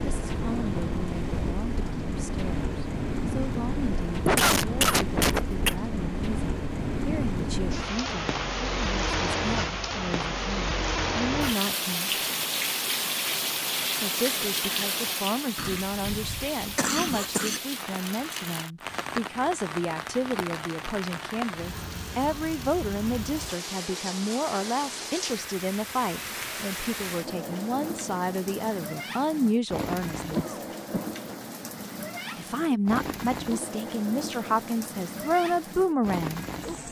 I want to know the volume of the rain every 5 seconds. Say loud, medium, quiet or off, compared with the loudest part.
loud, loud, loud, medium, medium, medium, medium, medium.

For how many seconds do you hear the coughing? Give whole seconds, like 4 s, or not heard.
4 s.